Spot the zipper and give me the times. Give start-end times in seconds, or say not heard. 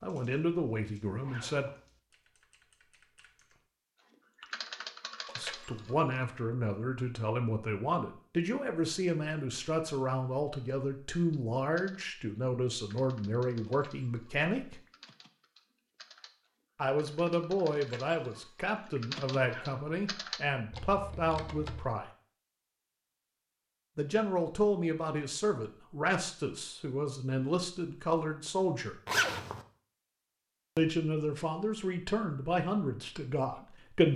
1.2-1.8, 19.4-19.9, 29.1-29.6.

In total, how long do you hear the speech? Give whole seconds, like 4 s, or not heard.
25 s.